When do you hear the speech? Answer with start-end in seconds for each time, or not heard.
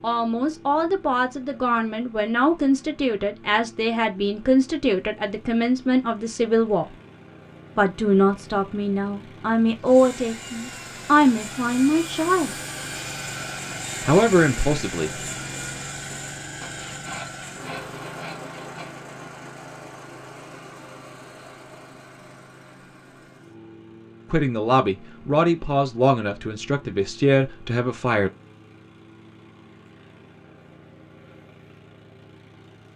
0.0-6.8, 7.8-12.5, 14.0-15.2, 24.3-28.3.